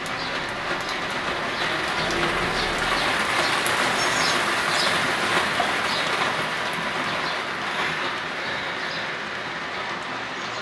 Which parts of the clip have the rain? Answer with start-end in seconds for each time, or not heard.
0.0-10.5.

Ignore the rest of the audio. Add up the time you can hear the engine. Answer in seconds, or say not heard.
3 s.